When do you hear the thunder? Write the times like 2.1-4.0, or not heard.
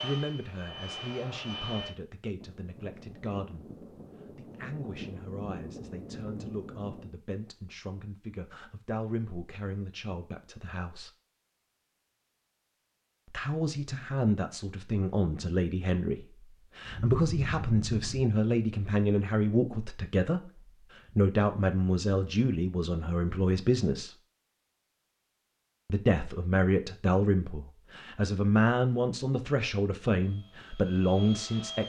2.4-7.2, 16.9-18.2.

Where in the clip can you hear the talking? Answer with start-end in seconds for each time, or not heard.
0.0-11.1, 13.3-24.1, 25.9-31.8.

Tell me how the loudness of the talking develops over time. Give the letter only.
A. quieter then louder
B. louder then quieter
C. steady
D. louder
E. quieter
D.